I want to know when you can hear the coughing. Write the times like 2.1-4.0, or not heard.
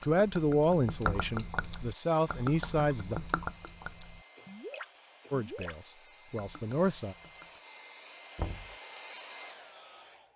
not heard.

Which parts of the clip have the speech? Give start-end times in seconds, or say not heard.
0.0-3.2, 5.3-7.2.